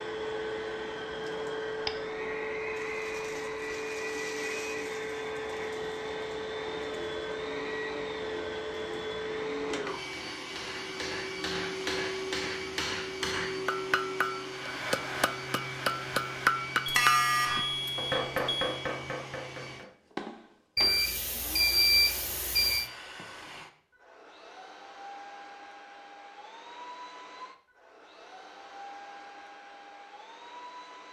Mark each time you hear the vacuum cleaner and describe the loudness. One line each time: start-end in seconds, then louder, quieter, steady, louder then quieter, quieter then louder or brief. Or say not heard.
0.0-31.0 quieter.